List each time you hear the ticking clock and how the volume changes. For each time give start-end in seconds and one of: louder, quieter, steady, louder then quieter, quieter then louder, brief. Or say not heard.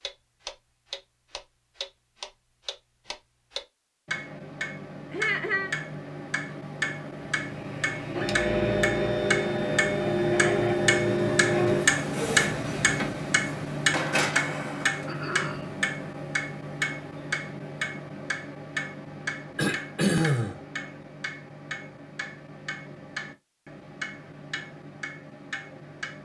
0.0-26.2 louder then quieter.